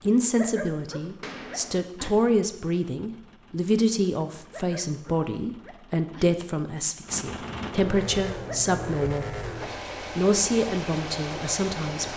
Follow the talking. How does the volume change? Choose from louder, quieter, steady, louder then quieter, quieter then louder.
steady.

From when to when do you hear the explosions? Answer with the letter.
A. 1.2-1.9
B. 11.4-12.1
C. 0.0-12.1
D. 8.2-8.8
A.